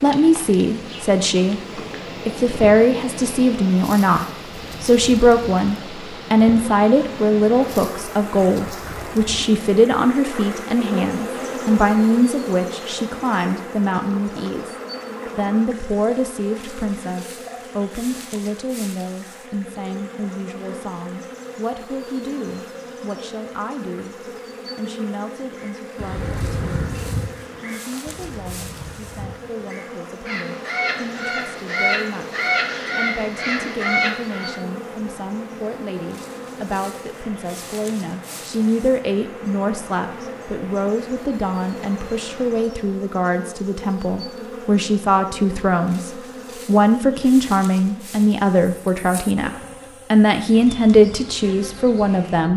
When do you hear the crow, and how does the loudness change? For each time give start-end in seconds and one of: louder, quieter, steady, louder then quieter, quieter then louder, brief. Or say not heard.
25.6-34.6 quieter then louder.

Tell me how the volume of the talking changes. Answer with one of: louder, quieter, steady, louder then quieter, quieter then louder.
quieter then louder.